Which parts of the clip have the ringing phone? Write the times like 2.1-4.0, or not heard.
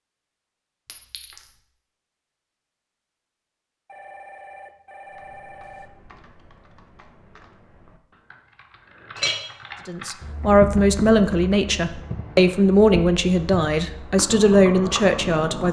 3.9-5.9.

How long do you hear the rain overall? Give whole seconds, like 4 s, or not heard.
not heard.